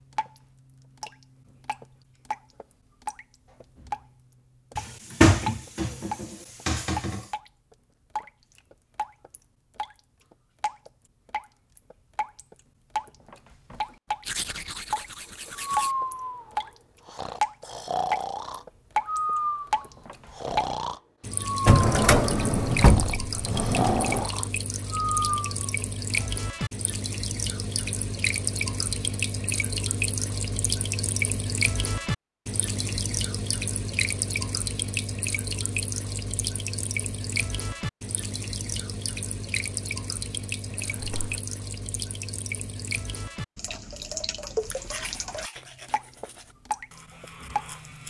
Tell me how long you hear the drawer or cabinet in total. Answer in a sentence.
The drawer or cabinet can be heard for 6 seconds in total.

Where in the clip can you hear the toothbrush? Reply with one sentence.
The toothbrush can be heard from 14.2 to 15.9 s and from 44.6 to 48.0 s.